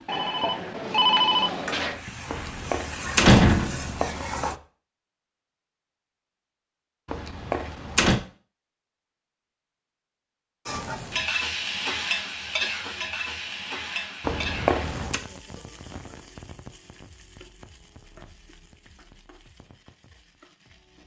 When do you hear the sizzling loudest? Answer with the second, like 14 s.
12 s.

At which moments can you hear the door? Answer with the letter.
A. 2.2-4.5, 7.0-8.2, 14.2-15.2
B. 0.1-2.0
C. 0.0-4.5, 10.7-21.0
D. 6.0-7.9
A.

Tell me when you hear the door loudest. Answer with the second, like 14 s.
3 s.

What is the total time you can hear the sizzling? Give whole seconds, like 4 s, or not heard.
15 s.